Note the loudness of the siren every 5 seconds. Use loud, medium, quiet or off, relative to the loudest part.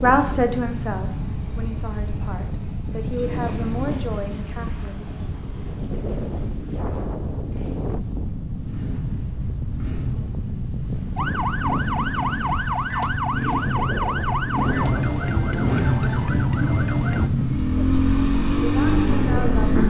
off, off, loud, loud.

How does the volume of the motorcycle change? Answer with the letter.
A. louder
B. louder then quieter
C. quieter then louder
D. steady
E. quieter
A.